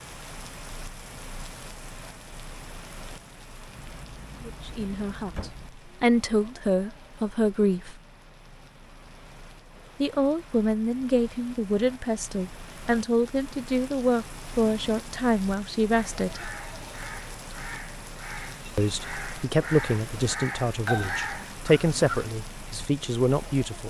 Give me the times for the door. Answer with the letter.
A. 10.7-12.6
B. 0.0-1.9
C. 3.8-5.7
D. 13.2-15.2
C.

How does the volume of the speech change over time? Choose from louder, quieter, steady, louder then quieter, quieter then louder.
steady.